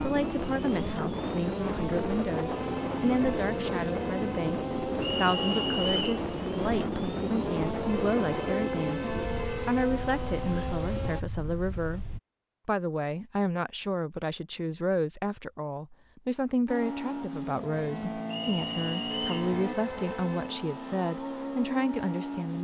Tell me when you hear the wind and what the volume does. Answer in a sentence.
You can hear the wind from 0.0 to 12.2 s, getting quieter.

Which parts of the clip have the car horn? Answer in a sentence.
You can hear the car horn from 2.5 to 4.4 s, from 7.8 to 9.8 s and from 19.1 to 20.6 s.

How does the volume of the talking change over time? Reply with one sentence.
The volume of the talking stays about the same.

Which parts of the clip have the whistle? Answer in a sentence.
You can hear the whistle from 5.0 to 6.2 s and from 18.3 to 19.5 s.